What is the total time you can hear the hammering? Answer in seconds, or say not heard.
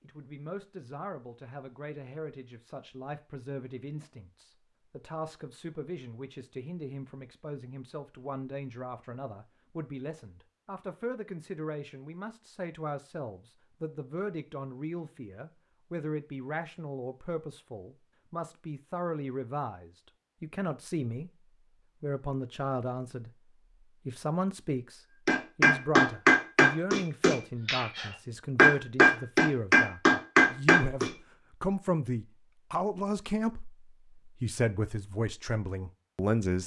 6 s.